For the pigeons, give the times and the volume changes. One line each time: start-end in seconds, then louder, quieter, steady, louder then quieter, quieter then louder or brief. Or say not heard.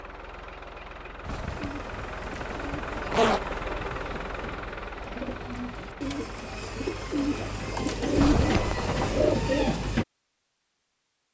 1.4-10.1 louder.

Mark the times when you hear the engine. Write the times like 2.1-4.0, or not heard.
0.0-7.8.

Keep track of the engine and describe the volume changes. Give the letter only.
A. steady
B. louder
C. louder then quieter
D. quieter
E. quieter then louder
C.